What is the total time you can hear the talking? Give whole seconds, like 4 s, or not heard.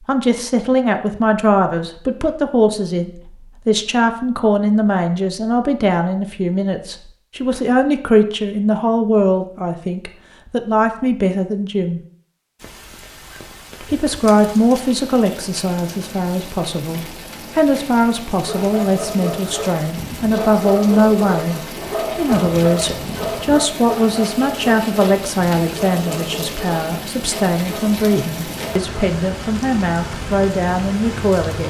30 s.